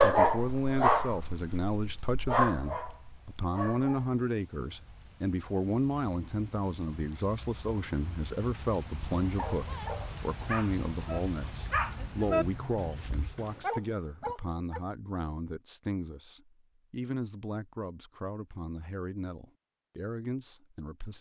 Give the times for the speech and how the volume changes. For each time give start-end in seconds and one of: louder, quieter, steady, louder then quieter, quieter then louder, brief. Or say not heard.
0.0-21.1 quieter.